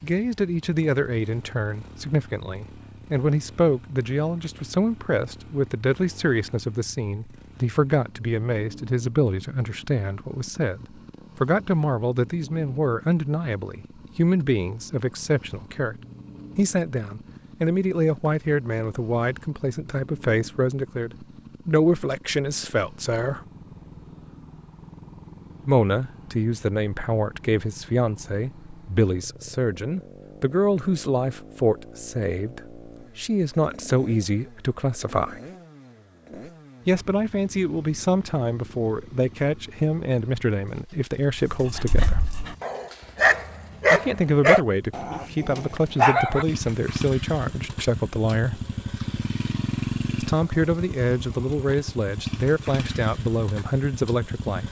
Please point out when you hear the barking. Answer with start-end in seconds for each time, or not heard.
41.6-46.5.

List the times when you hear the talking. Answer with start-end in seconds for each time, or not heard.
0.0-15.9, 16.6-23.4, 25.6-35.4, 36.9-42.2, 43.9-48.6, 50.2-54.6.